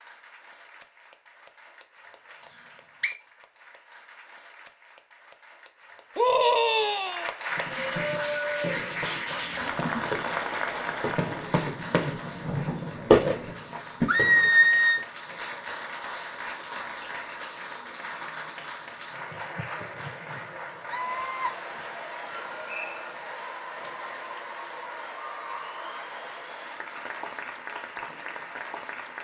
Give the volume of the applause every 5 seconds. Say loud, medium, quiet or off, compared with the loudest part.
quiet, loud, loud, medium, medium, medium.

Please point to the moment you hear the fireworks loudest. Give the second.
13 s.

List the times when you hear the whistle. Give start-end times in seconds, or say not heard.
2.5-3.1, 22.6-23.1.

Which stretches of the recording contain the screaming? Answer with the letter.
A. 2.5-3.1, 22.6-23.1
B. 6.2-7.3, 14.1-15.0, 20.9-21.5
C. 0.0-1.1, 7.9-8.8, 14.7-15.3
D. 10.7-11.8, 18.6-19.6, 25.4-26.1
B.